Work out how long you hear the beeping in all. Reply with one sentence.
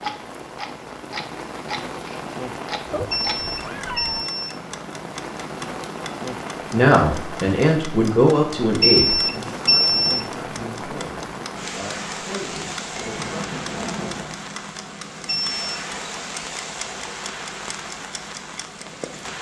The beeping can be heard for 3 seconds in total.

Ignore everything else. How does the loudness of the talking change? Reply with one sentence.
The volume of the talking goes down.